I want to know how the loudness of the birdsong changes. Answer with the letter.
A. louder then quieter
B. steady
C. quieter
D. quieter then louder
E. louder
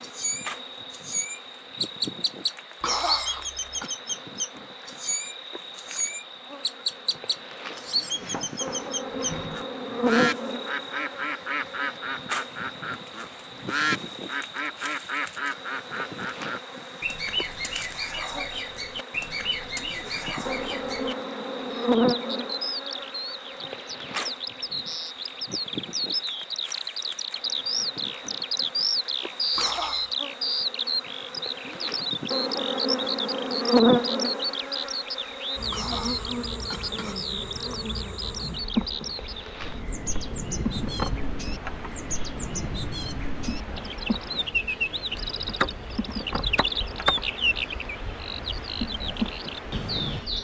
B.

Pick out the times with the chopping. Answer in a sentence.
You can hear the chopping from 8.1 to 9.7 s and from 45.1 to 47.1 s.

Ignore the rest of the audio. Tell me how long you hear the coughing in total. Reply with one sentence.
You can hear the coughing for 3 seconds altogether.